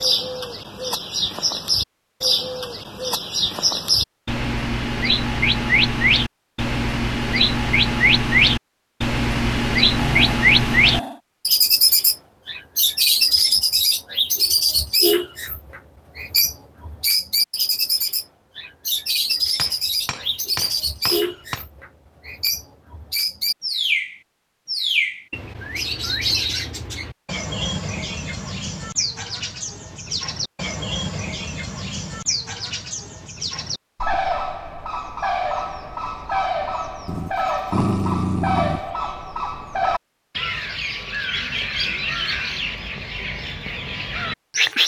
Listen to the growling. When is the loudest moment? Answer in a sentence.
The volume of the growling peaks at 38 seconds.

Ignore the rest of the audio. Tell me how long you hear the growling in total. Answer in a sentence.
You can hear the growling for 3 seconds altogether.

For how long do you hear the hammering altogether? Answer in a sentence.
You can hear the hammering for 2 seconds altogether.